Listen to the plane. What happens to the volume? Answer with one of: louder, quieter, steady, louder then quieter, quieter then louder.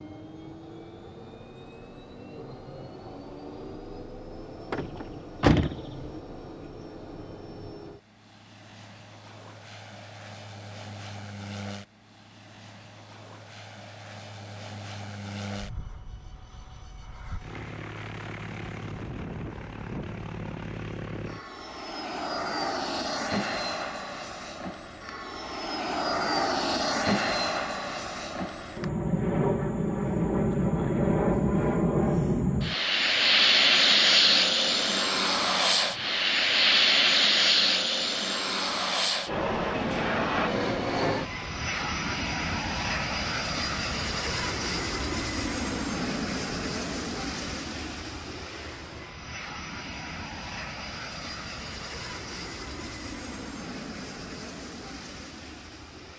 louder then quieter.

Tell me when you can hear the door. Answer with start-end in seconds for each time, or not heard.
4.7-6.2.